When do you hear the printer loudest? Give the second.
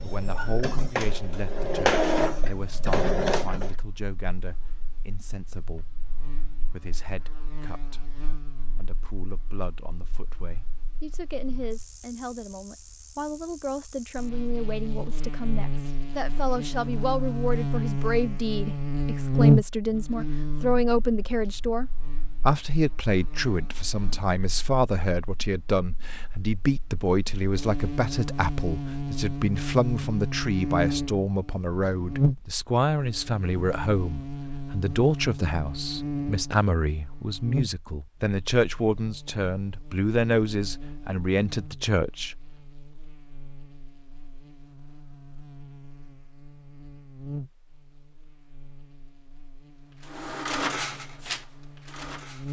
2 s.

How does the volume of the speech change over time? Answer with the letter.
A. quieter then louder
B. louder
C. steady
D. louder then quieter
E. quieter
B.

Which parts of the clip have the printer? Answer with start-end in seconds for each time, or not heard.
0.0-3.8, 49.9-52.4.